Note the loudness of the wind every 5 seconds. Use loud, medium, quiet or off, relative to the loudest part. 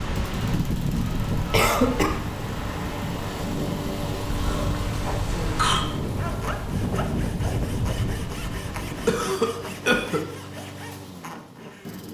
loud, loud, off.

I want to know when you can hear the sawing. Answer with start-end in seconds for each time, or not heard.
6.0-12.0.